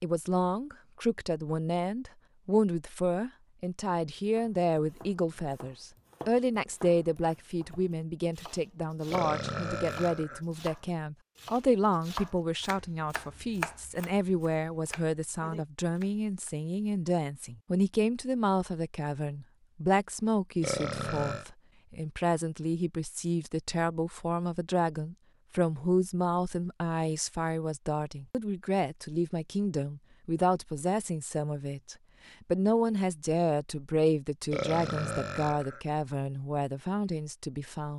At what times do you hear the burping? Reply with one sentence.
The burping can be heard from 9.1 to 10.4 s, from 20.6 to 21.4 s and from 34.5 to 35.8 s.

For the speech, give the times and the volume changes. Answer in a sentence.
You can hear the speech from 0.0 to 37.9 s, at a steady volume.